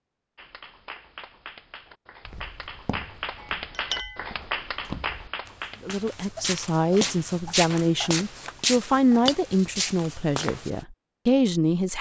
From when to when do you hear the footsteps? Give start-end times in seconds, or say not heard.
2.2-10.8.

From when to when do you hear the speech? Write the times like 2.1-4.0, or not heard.
5.8-11.9.